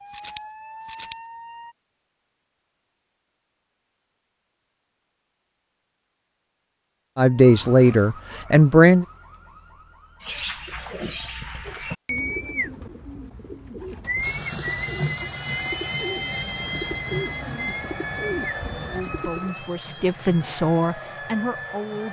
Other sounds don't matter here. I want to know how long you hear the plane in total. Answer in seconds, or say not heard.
8 s.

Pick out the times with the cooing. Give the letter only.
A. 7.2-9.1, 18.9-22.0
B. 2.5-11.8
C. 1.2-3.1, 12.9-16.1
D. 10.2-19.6
D.